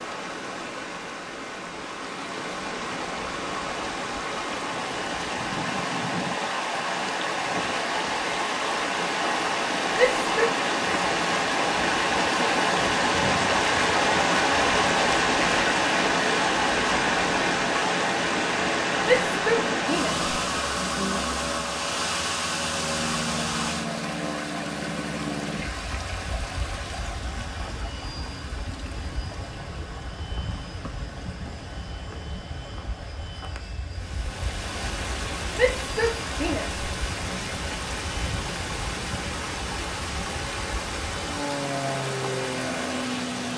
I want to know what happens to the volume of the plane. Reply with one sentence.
The volume of the plane goes down, then up.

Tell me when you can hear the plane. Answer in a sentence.
The plane can be heard from 19.6 to 43.5 s.